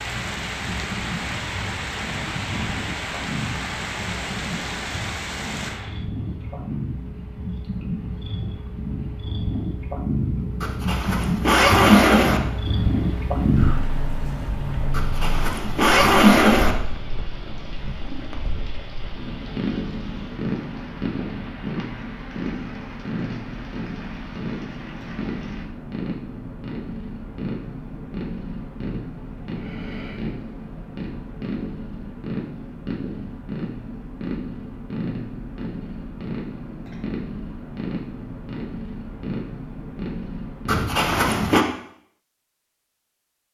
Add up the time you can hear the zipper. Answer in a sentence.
The zipper can be heard for 5 seconds in total.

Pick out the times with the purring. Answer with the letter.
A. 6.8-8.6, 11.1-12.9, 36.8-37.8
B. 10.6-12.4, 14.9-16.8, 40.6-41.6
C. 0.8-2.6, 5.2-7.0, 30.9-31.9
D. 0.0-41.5
D.